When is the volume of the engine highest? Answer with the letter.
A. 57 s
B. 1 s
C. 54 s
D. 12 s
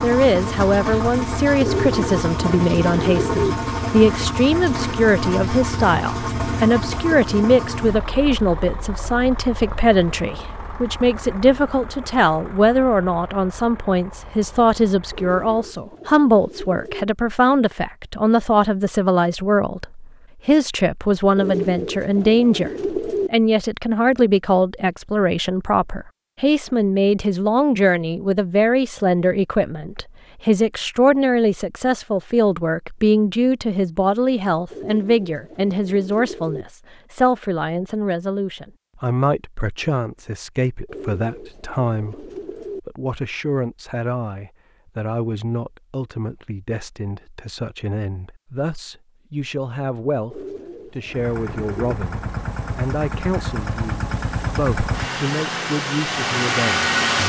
A.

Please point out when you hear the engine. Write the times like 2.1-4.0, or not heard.
0.0-15.8, 51.0-57.2.